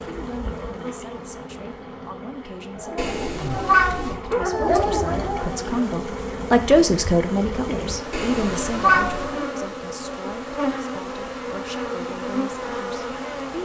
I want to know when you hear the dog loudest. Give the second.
5 s.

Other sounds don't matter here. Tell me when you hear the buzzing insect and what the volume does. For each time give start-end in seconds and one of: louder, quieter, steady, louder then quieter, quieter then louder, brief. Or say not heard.
0.0-13.5 louder.